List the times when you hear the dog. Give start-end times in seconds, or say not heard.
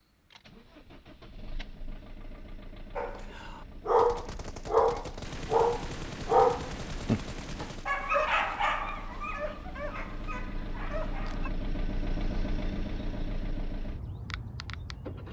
3.0-11.5.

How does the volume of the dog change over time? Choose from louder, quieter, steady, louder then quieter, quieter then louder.
quieter.